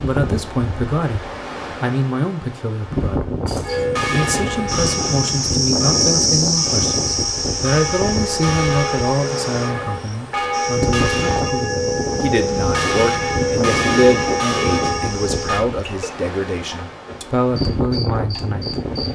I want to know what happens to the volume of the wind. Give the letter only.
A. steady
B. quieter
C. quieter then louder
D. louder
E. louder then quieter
A.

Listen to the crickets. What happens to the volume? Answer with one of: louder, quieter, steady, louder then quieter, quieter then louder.
quieter.